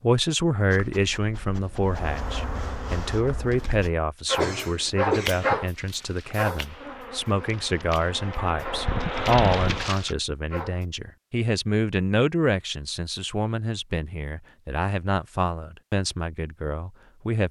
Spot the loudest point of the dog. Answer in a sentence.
The loudest moment of the dog is at 5 seconds.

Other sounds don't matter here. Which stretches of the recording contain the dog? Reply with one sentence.
The dog can be heard from 0.7 to 10.8 s.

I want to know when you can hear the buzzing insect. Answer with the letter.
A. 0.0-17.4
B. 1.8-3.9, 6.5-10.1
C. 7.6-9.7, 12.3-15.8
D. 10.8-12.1
B.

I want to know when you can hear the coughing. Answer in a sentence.
You can hear the coughing from 4.3 to 5.6 s.